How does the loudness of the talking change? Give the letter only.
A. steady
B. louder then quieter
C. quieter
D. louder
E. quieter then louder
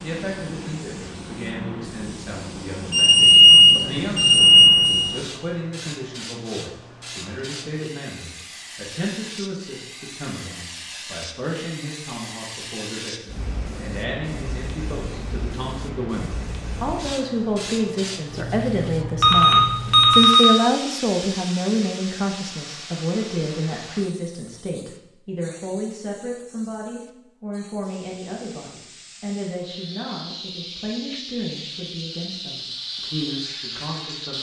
B.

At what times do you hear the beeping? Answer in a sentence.
You can hear the beeping from 2.9 to 5.2 s and from 19.2 to 20.4 s.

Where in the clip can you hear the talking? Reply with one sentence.
You can hear the talking from 0.0 to 34.3 s.